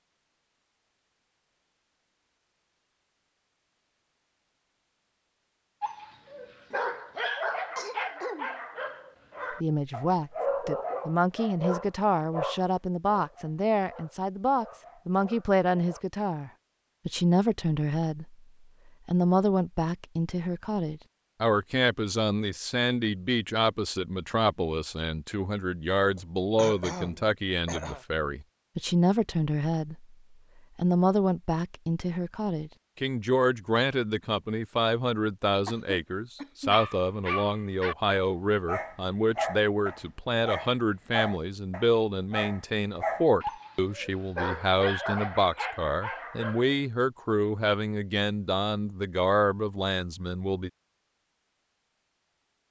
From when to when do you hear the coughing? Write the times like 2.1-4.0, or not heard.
6.7-8.6, 26.1-28.1, 35.6-36.8.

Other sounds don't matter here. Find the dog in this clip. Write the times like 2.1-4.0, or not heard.
5.8-16.0, 36.7-46.8.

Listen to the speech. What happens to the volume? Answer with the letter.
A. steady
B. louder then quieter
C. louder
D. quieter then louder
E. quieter
A.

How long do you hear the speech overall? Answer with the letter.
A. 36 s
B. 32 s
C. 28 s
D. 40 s
D.